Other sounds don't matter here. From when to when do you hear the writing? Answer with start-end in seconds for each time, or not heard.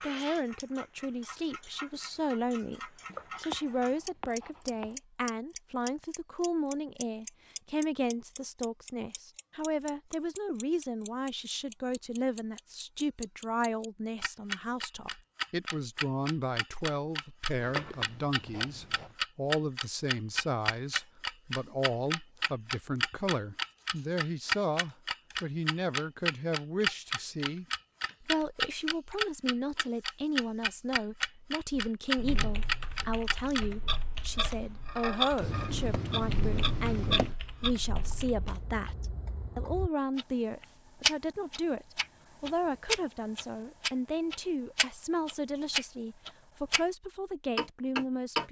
3.0-5.0, 17.6-19.1, 35.4-37.4.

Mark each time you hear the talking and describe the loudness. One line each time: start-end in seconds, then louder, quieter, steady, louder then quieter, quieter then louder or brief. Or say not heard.
0.0-48.4 steady.